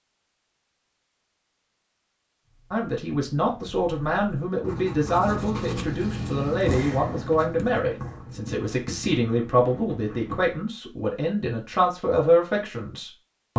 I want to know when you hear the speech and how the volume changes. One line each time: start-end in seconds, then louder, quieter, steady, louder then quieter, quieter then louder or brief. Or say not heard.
2.7-13.5 steady.